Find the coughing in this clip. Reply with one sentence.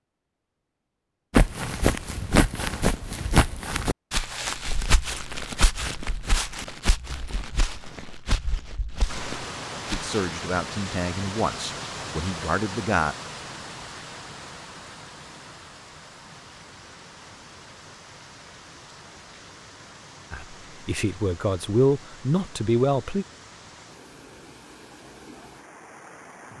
You can't hear the coughing here.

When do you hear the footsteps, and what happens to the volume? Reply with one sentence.
You can hear the footsteps from 1.3 to 10.2 s, getting quieter.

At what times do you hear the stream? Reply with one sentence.
You can hear the stream from 9.1 to 26.5 s.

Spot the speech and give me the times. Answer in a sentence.
The speech can be heard from 9.9 to 13.2 s and from 20.3 to 23.2 s.